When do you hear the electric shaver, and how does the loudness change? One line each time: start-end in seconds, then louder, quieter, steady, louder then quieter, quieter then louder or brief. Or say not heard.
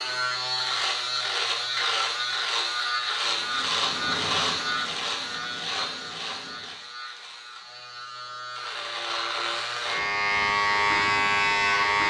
0.0-12.0 quieter then louder.